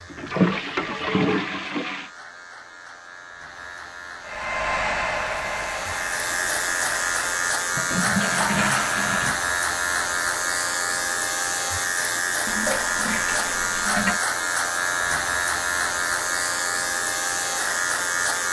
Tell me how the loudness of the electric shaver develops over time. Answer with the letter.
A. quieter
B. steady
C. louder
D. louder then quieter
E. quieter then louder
C.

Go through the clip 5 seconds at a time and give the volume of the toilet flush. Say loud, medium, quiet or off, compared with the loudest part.
loud, loud, medium, off.